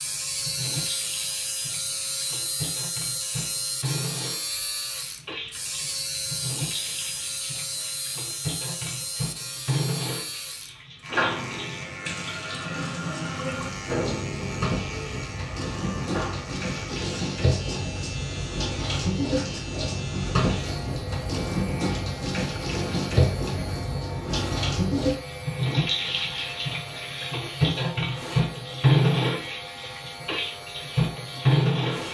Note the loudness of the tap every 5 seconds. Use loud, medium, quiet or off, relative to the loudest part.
quiet, medium, medium, medium, loud, loud, loud.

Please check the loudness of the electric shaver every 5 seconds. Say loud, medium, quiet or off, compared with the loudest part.
loud, loud, loud, medium, medium, medium, medium.